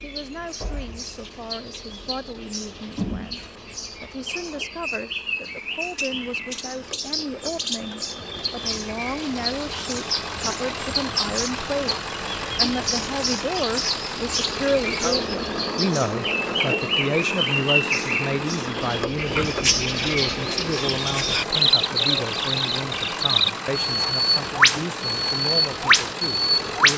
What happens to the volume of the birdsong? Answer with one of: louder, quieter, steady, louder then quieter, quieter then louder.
louder.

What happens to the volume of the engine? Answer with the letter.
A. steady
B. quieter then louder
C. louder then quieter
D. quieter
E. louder
E.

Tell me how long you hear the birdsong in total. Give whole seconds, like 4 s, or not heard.
27 s.